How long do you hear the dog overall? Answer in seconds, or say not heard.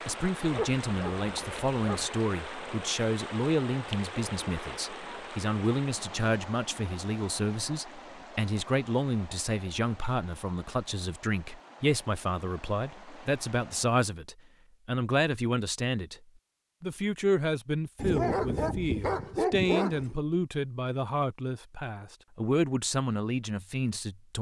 4 s.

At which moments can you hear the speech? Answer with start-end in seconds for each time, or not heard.
0.1-16.1, 16.8-24.3.